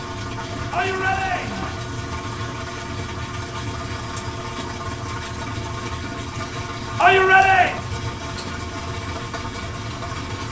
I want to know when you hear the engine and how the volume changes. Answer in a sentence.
You can hear the engine from 0.0 to 10.4 s, at a steady volume.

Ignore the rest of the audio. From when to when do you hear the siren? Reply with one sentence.
The siren can't be heard in this clip.